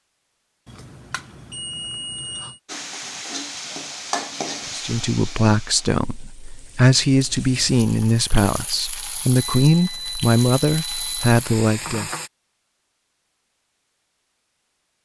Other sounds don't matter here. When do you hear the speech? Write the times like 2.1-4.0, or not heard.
4.7-12.1.